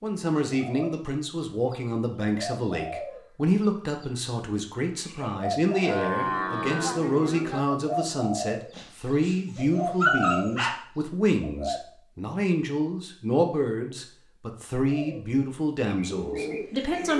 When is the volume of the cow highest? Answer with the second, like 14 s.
6 s.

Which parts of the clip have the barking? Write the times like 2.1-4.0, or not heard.
8.8-9.3, 10.0-10.7.